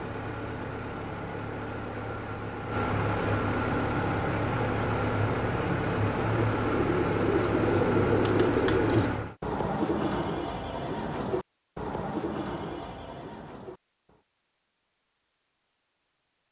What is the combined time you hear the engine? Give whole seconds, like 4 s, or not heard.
9 s.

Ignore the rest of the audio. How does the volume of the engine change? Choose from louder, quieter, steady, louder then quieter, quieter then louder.
louder.